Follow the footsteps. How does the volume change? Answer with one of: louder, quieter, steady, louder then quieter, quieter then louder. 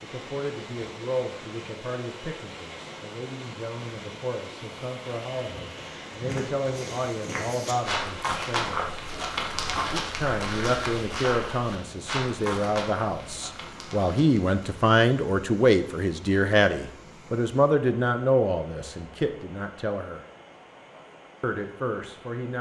louder then quieter.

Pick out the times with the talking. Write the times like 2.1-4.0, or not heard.
0.0-8.9, 9.9-20.2, 21.4-22.5.